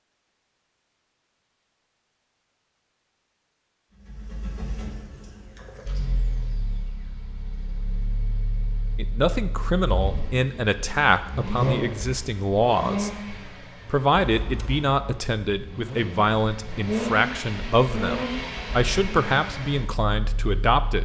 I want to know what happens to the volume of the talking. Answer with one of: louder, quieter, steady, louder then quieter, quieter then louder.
steady.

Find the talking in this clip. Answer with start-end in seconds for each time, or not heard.
8.9-13.1, 13.8-21.0.